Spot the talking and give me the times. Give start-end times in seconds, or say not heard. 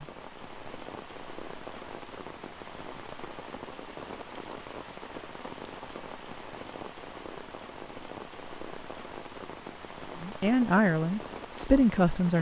10.2-12.3.